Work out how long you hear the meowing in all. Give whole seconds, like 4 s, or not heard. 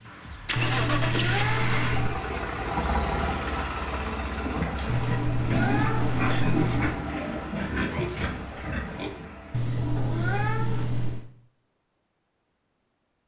5 s.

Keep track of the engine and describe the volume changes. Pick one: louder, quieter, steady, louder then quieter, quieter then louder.
quieter.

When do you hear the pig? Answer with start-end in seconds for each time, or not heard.
4.4-9.3.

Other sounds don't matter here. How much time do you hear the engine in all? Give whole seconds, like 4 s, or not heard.
10 s.